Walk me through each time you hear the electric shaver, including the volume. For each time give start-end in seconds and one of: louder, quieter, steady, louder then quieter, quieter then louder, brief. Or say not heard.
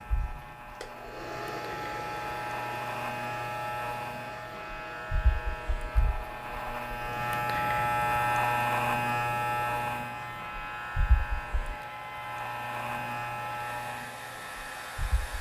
0.0-15.3 louder then quieter.